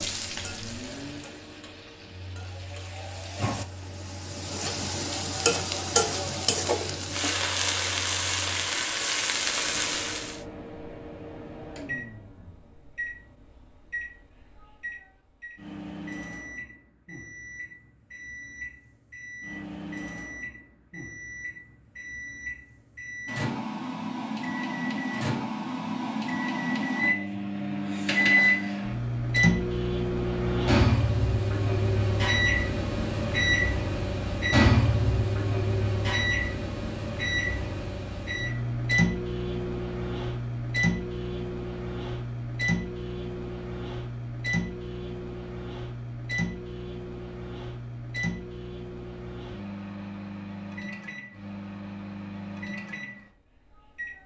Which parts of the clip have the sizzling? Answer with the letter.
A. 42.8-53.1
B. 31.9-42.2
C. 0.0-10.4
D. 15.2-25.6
C.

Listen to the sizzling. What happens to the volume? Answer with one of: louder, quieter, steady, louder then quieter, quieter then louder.
louder.